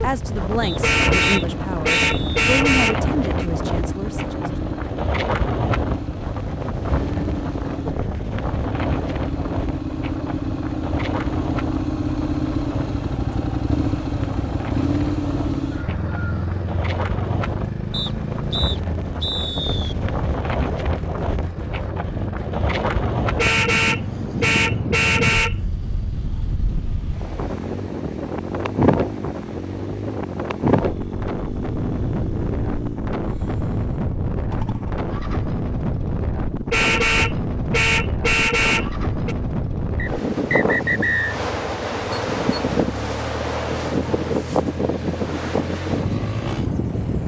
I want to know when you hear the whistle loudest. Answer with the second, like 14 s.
41 s.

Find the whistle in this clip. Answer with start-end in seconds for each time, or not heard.
0.6-2.4, 17.9-19.9, 40.0-41.4.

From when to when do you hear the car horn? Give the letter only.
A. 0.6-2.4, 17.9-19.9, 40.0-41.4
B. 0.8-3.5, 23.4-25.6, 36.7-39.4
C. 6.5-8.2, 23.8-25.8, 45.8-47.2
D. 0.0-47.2
B.